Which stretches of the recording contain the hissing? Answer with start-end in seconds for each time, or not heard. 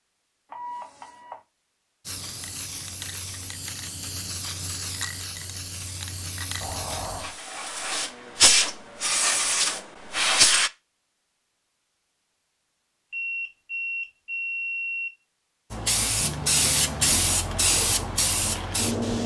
2.0-10.7, 15.7-19.2.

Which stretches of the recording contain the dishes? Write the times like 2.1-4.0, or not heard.
not heard.